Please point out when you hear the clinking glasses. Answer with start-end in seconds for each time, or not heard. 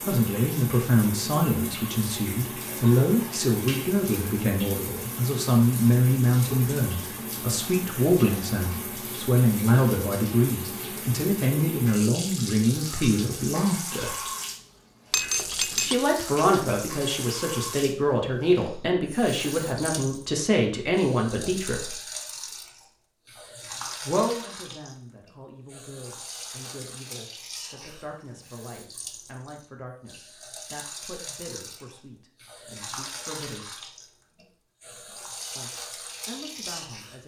15.1-15.9.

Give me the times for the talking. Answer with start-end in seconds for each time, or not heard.
0.1-14.1, 15.8-21.9, 24.1-33.7, 35.5-37.2.